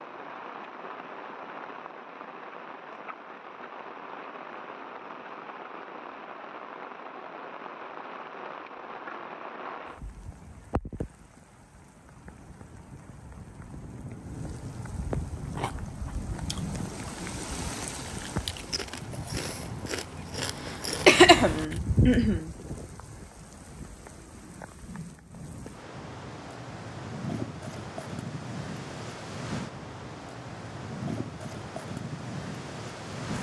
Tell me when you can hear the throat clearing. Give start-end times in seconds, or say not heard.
21.1-22.4.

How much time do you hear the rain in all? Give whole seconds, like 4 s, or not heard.
33 s.